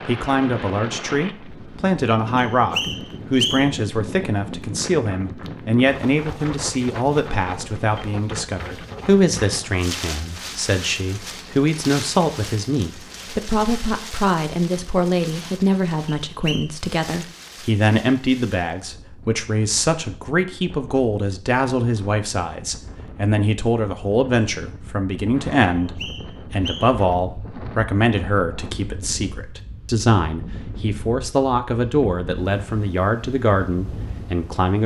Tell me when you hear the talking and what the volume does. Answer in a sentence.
The talking can be heard from 0.1 to 34.8 s, at a steady volume.